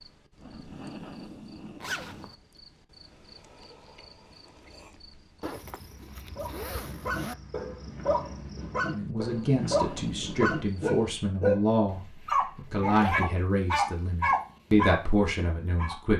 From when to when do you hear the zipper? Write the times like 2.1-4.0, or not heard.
1.8-2.4, 5.4-7.3, 12.8-13.2.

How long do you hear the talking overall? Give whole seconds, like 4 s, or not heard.
7 s.